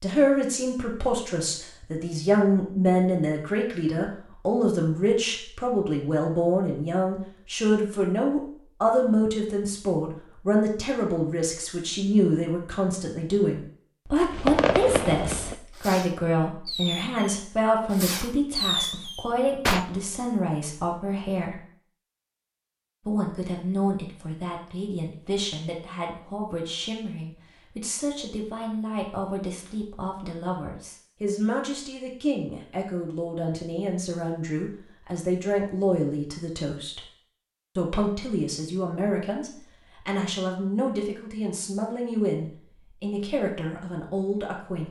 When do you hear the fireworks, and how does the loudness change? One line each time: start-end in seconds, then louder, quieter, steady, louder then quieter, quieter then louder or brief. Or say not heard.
14.3-19.9 quieter then louder.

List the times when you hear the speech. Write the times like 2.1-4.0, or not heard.
0.0-21.6, 23.1-37.0, 37.8-44.8.